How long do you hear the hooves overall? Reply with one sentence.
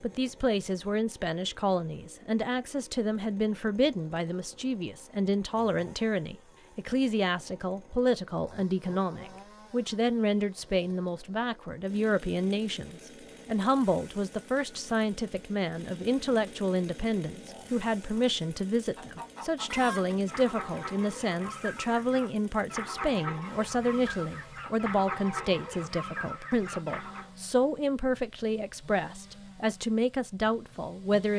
You can't hear the hooves here.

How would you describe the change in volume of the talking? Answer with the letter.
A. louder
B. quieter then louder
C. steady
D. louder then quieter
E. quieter
C.